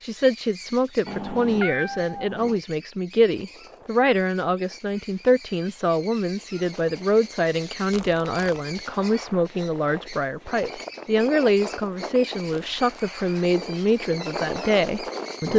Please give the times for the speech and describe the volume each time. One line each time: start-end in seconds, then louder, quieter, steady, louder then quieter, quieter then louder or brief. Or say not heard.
0.0-15.5 steady.